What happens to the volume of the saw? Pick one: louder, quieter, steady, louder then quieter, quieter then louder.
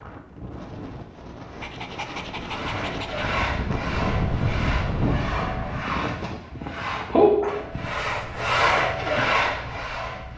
louder.